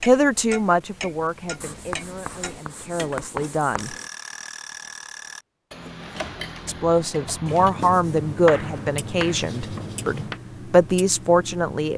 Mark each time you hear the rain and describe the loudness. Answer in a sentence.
You can't hear the rain here.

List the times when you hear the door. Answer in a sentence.
You can't hear the door here.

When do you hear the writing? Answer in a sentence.
The writing can be heard from 1.6 to 4.1 s and from 7.5 to 10.4 s.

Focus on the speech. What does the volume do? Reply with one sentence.
The loudness of the speech goes down, then up.